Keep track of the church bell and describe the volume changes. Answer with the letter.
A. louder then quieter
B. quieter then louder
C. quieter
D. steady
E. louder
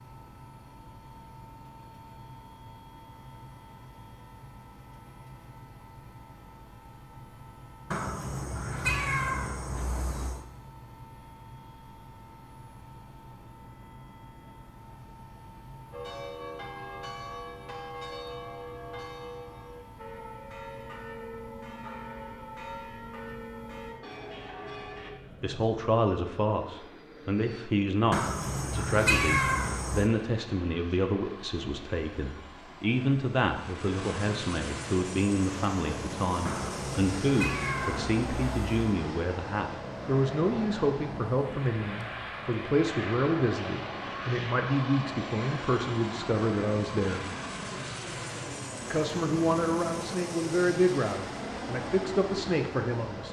D.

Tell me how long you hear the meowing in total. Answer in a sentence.
The meowing can be heard for 7 seconds in total.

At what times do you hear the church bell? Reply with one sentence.
You can hear the church bell from 15.9 to 25.1 s.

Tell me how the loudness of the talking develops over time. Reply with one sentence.
The loudness of the talking stays about the same.